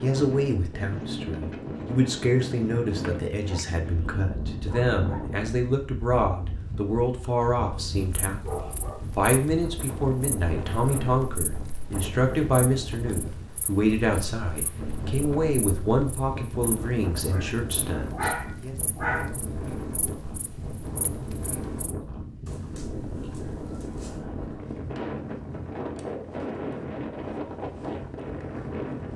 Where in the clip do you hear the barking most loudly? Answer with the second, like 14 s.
19 s.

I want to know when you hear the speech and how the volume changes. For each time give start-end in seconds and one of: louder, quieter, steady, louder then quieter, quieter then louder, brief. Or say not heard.
0.0-18.8 steady.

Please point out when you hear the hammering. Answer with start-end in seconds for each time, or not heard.
not heard.